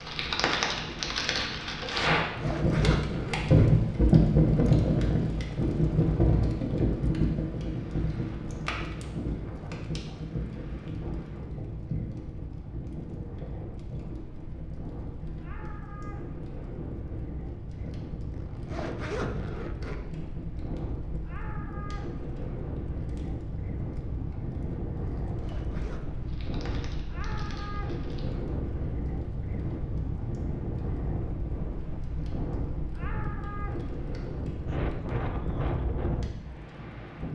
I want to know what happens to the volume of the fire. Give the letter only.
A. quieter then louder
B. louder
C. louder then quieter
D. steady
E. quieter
E.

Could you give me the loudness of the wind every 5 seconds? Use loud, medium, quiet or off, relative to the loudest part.
medium, medium, medium, medium, loud, loud, loud, loud.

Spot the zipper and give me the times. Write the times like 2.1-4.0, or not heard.
2.2-3.7, 18.3-20.0, 25.2-26.1.